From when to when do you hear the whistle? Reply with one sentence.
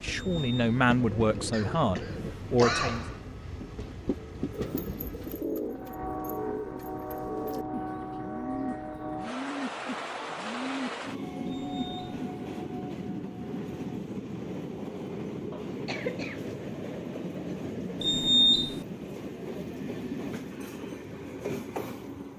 You can't hear the whistle here.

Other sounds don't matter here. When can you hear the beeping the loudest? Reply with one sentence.
The loudest moment of the beeping is at 18 seconds.